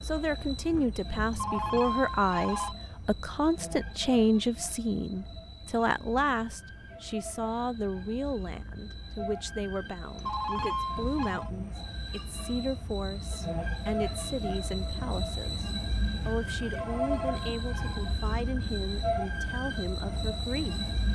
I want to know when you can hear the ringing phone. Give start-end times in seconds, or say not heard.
1.3-2.8, 10.2-11.5, 16.9-18.1.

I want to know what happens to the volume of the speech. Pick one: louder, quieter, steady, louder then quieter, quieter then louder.
quieter.